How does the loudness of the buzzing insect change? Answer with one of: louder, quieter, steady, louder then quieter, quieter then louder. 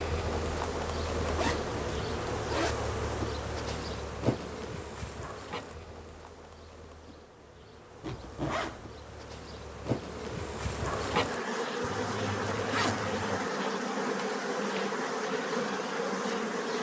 quieter then louder.